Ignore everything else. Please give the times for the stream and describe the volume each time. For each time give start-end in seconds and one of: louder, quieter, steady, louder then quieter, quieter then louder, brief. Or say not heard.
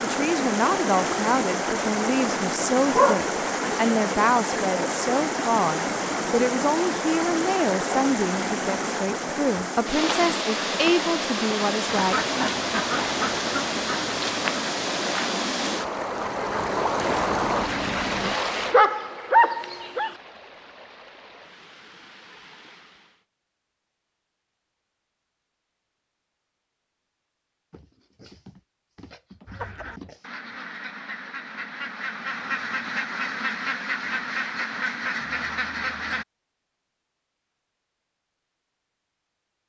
0.0-23.2 quieter.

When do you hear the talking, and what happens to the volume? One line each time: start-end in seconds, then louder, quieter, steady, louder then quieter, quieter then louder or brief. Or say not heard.
0.0-12.2 steady.